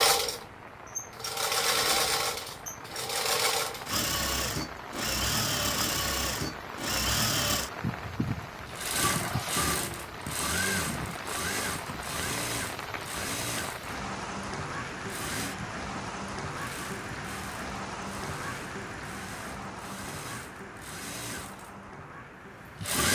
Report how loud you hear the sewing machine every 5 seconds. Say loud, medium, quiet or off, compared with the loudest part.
loud, loud, medium, quiet, medium.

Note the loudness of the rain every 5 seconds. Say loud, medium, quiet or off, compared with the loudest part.
medium, loud, loud, loud, medium.